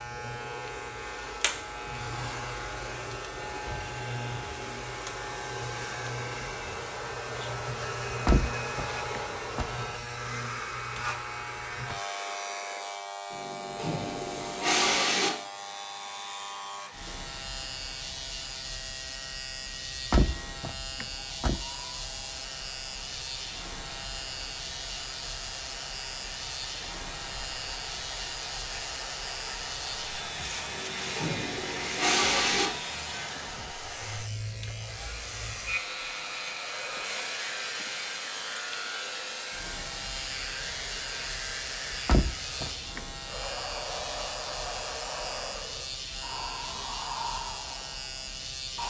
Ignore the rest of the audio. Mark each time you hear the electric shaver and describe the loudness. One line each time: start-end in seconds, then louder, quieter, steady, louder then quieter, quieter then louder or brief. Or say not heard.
0.0-48.8 steady.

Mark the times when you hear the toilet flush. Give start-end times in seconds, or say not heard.
13.3-15.3, 30.6-32.7.